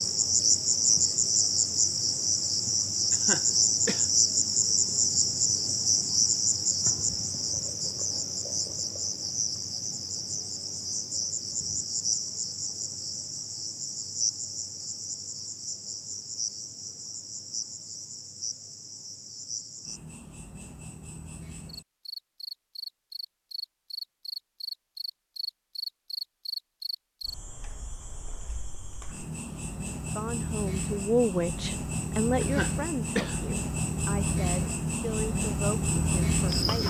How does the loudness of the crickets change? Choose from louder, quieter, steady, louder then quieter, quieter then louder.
quieter then louder.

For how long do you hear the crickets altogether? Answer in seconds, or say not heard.
37 s.